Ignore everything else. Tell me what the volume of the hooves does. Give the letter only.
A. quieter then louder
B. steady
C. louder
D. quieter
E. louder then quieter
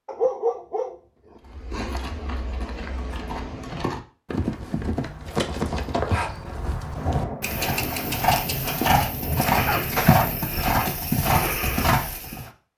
C.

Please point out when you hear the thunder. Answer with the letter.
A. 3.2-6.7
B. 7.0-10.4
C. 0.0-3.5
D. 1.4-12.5
B.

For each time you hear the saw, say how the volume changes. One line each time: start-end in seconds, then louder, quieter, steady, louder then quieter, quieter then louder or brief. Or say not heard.
not heard.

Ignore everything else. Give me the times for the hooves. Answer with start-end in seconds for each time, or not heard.
1.4-12.5.